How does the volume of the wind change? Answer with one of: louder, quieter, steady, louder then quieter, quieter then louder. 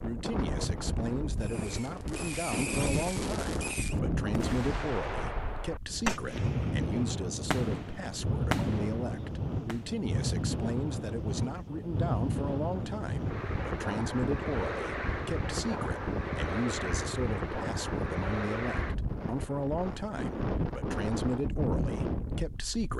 steady.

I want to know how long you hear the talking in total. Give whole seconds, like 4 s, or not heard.
23 s.